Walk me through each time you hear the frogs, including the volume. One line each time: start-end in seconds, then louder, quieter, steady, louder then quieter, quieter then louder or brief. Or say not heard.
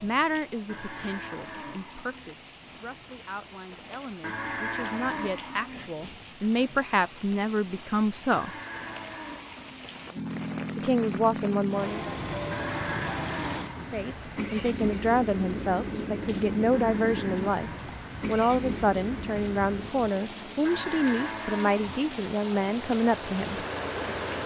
not heard.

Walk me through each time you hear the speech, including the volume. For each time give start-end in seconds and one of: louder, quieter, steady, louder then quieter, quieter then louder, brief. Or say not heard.
0.0-8.5 louder
10.8-12.2 brief
13.9-23.6 steady.